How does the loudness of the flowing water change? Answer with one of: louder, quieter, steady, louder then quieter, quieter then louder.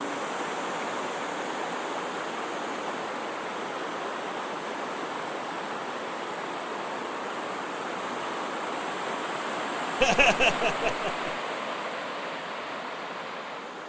steady.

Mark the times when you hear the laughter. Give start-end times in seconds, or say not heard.
10.0-11.3.